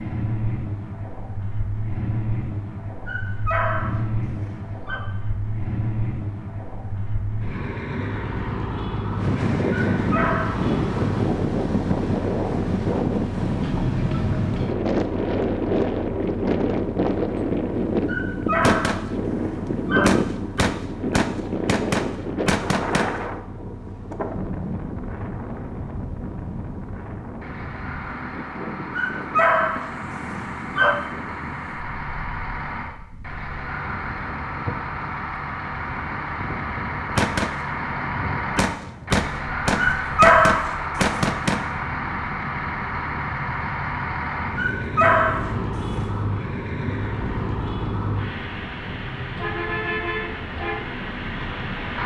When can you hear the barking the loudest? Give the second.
40 s.